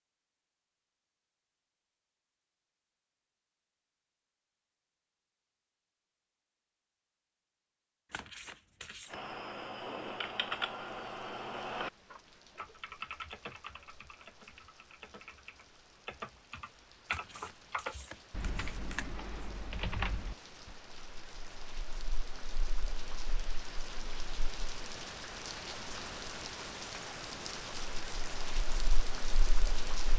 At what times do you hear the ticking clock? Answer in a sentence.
The ticking clock can't be heard in this clip.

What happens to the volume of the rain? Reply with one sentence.
The loudness of the rain goes up.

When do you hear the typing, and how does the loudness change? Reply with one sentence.
The typing can be heard from 9.1 to 20.8 s, getting quieter then louder.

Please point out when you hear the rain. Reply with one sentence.
You can hear the rain from 11.0 to 30.1 s.